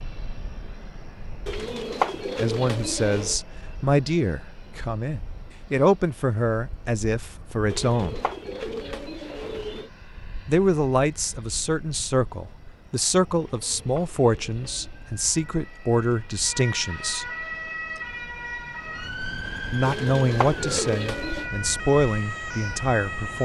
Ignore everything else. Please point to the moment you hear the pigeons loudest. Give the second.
2 s.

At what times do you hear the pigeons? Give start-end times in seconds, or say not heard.
1.4-3.4, 7.7-9.9, 13.4-15.1, 19.9-21.5.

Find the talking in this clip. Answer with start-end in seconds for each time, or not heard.
2.1-8.2, 10.4-17.3, 19.7-23.4.